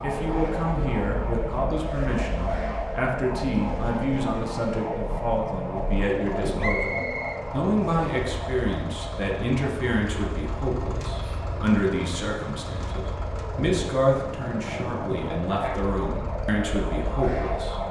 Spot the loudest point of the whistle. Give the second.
7 s.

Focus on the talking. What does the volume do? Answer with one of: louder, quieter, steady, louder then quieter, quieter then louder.
steady.